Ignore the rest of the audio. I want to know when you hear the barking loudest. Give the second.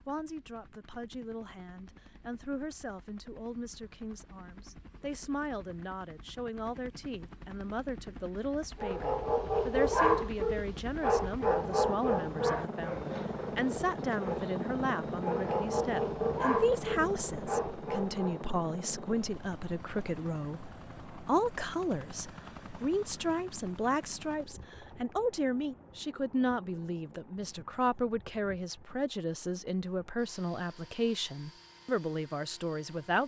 10 s.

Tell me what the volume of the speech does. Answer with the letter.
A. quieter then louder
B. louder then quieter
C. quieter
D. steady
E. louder
E.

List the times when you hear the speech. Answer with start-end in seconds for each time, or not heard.
0.1-33.2.